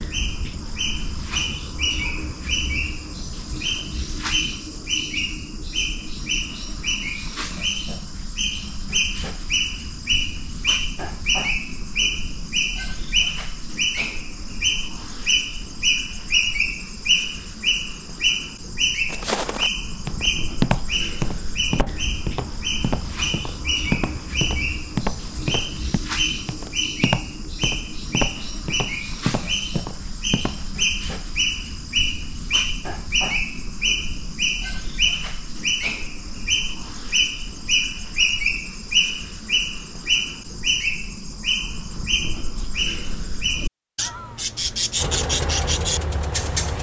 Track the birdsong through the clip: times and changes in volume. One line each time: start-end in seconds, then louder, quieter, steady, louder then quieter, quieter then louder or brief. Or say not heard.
0.0-46.7 steady.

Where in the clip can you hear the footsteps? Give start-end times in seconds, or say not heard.
19.1-30.7.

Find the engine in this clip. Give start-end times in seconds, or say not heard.
45.0-46.7.